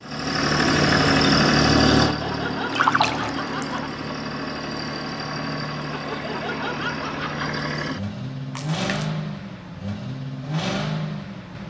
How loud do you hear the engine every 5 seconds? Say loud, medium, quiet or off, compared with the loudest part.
loud, medium, medium.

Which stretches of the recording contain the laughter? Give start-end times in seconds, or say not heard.
2.0-3.9, 5.9-7.7.